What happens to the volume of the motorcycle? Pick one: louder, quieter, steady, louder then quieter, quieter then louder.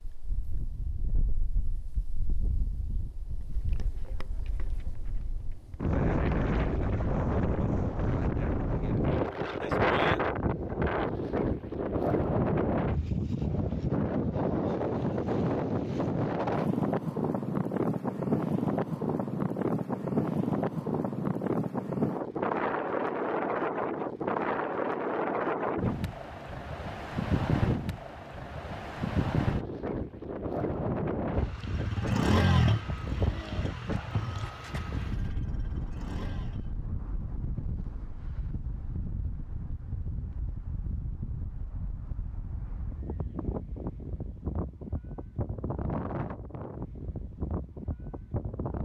quieter.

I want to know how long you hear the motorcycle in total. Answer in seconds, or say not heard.
5 s.